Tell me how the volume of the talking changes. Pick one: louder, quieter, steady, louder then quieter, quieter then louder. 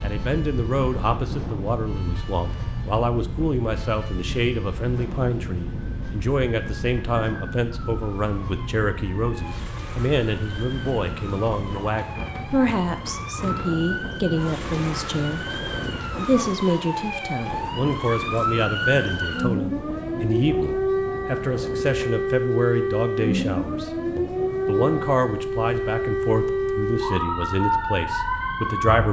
steady.